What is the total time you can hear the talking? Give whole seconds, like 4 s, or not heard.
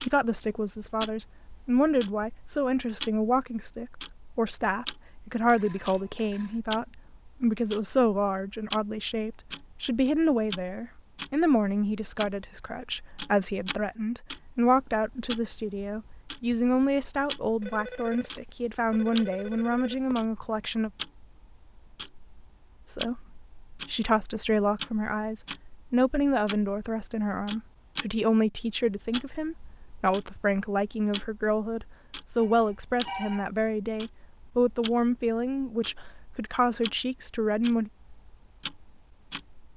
36 s.